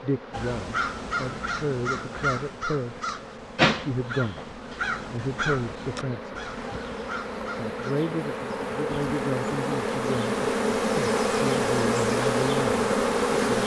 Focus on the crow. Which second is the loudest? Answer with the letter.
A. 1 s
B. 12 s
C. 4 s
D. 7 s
C.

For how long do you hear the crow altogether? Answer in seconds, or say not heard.
8 s.